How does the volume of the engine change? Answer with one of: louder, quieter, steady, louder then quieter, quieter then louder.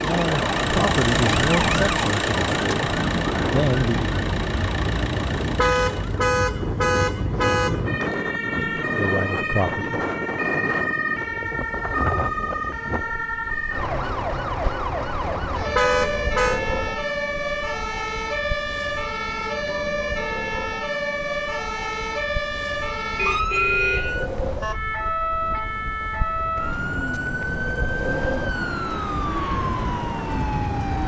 quieter.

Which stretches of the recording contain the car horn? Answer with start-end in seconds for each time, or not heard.
5.4-7.8, 15.5-16.6, 23.1-25.1.